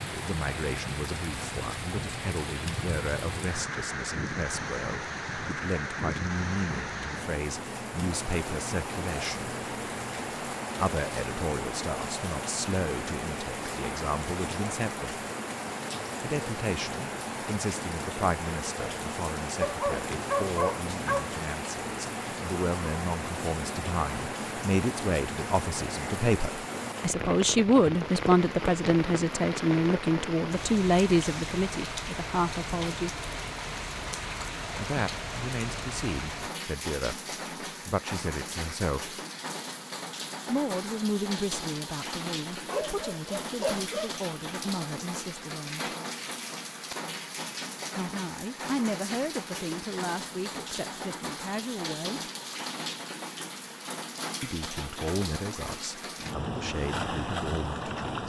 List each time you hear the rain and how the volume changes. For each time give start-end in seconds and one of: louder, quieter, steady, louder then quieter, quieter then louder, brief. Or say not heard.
0.0-58.2 steady.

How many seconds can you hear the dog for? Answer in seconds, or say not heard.
3 s.